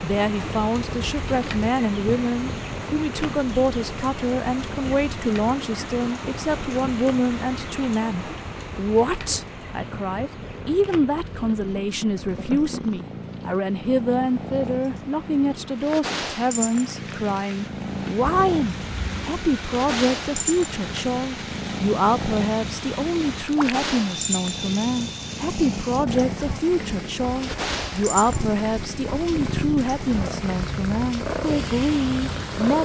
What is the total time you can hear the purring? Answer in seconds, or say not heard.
33 s.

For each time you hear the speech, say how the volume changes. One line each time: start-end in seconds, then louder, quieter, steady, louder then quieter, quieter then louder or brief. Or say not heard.
0.0-32.8 steady.